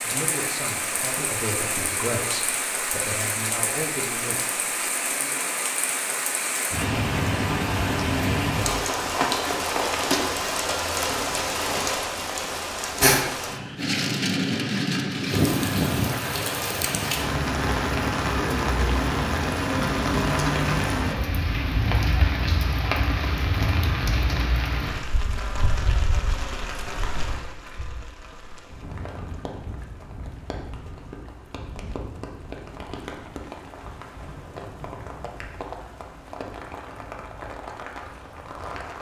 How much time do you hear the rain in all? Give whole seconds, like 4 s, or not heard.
39 s.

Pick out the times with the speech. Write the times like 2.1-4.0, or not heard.
0.0-5.3.